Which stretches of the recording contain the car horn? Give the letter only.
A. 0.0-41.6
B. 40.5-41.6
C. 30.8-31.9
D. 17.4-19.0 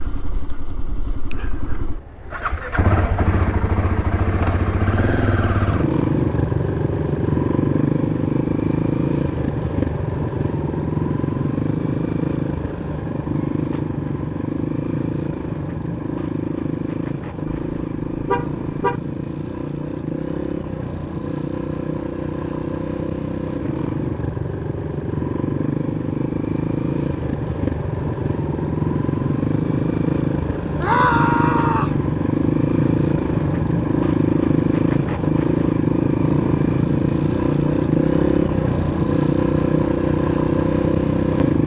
D.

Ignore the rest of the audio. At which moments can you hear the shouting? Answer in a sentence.
The shouting can be heard from 30.8 to 31.9 s.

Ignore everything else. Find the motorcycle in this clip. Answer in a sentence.
You can hear the motorcycle from 0.0 to 41.6 s.